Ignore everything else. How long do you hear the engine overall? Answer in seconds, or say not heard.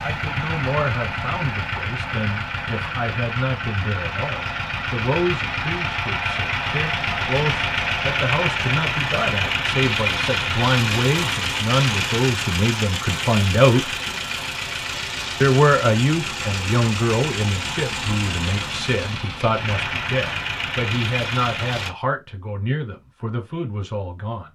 22 s.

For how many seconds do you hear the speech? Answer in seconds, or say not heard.
23 s.